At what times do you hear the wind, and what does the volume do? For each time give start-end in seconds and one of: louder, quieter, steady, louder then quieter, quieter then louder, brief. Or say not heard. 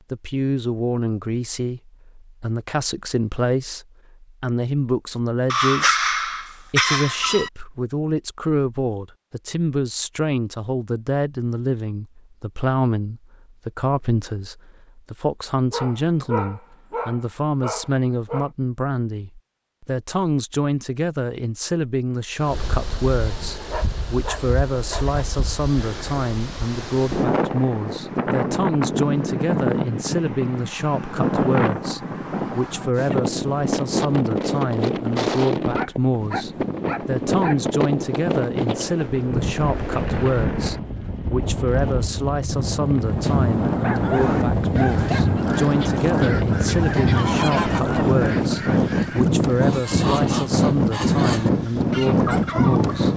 22.4-53.1 louder.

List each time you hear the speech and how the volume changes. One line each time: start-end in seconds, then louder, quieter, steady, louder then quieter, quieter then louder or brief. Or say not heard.
0.1-53.1 steady.